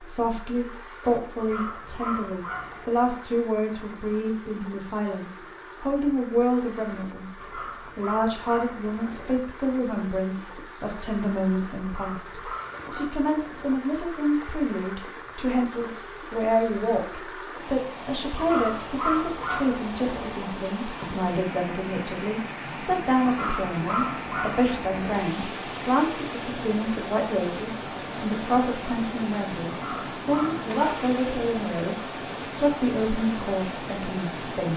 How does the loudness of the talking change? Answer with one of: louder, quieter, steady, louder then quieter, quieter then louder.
steady.